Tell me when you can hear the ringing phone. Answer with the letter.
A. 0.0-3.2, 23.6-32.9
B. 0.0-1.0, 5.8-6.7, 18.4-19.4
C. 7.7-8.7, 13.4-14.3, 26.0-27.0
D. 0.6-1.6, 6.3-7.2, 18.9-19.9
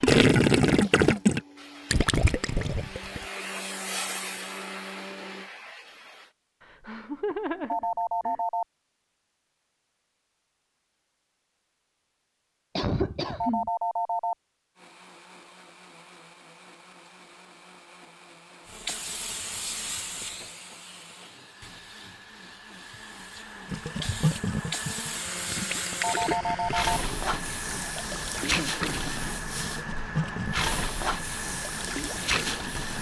C.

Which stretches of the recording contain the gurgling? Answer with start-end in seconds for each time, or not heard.
0.0-3.2, 23.6-32.9.